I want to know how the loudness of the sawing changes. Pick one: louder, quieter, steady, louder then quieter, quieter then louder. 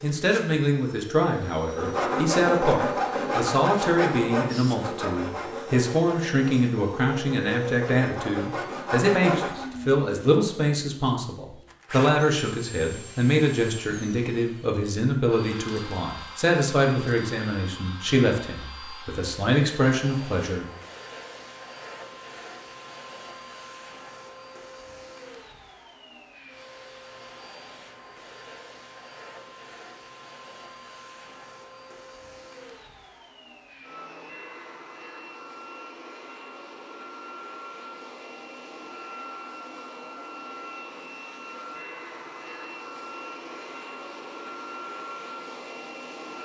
quieter then louder.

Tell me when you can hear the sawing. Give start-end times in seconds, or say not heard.
1.6-9.7.